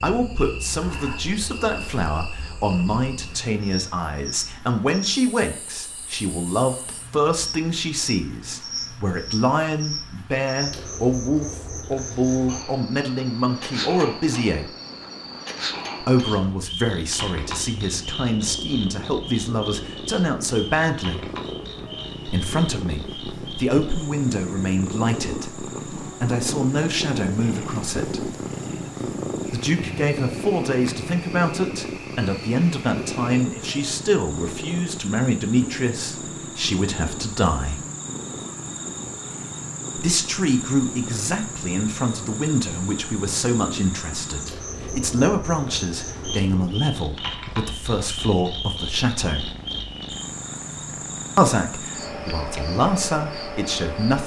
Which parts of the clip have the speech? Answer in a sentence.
The speech can be heard from 0.0 to 14.7 s, from 16.0 to 21.3 s, from 22.2 to 28.4 s, from 29.5 to 37.8 s, from 40.0 to 49.5 s and from 51.4 to 54.2 s.